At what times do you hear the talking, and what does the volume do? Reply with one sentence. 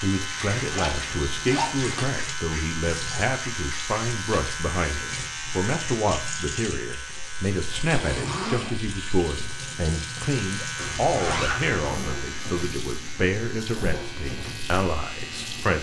The talking can be heard from 0.0 to 15.7 s, at a steady volume.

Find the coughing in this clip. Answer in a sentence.
The coughing can't be heard in this clip.